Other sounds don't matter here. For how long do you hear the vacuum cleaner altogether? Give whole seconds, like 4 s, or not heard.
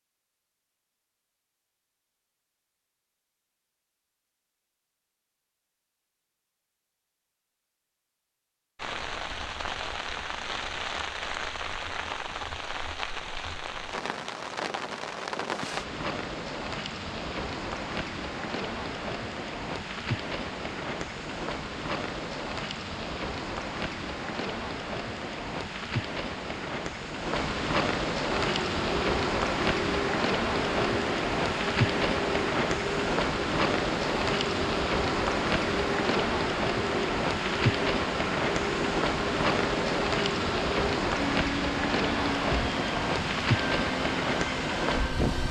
17 s.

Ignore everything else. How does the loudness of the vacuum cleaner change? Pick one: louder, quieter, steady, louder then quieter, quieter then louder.
steady.